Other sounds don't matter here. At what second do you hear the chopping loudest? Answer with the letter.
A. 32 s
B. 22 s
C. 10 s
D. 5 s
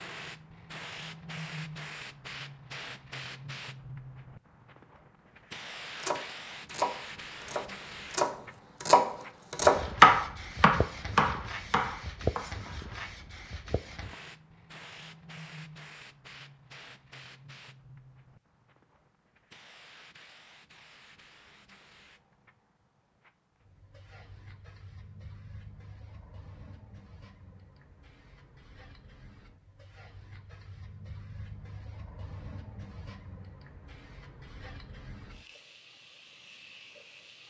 C.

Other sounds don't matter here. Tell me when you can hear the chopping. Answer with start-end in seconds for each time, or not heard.
6.0-12.8.